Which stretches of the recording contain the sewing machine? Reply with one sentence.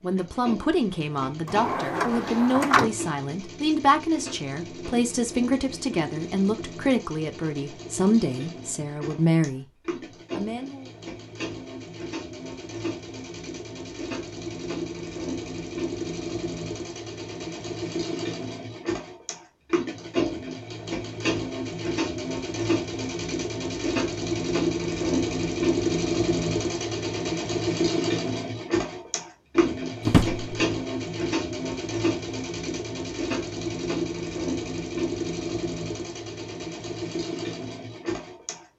You can hear the sewing machine from 0.0 to 38.6 s.